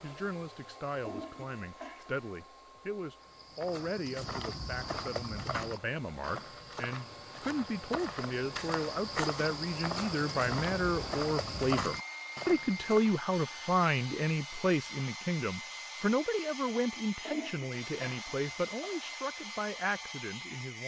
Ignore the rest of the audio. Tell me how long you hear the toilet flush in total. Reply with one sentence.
You can hear the toilet flush for 3 seconds altogether.